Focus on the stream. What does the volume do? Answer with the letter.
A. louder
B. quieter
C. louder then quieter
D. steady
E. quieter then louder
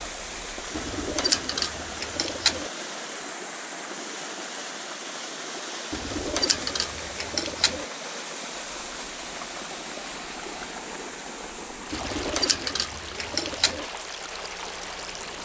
D.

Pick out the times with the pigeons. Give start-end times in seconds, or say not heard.
0.7-2.7, 5.9-7.8, 11.9-13.8.